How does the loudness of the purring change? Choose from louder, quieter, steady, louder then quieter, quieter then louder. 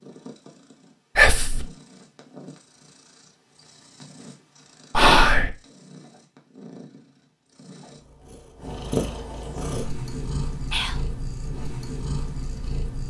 louder.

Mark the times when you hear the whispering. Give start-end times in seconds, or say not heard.
1.1-1.6, 4.9-5.5, 10.7-11.2.